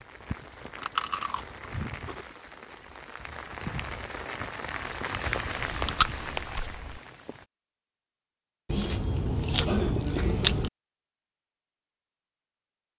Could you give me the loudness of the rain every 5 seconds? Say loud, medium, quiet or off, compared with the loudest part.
medium, loud, off.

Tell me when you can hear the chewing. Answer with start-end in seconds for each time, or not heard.
0.8-2.2, 5.5-7.0, 8.7-10.7.